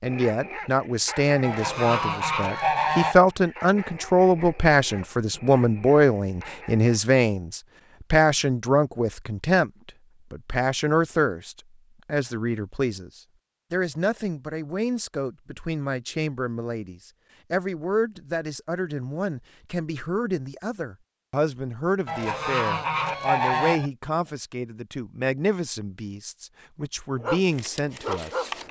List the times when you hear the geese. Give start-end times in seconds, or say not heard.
1.4-3.2, 22.1-23.9.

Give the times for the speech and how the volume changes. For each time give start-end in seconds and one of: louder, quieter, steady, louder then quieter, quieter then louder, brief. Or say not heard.
0.0-28.5 quieter.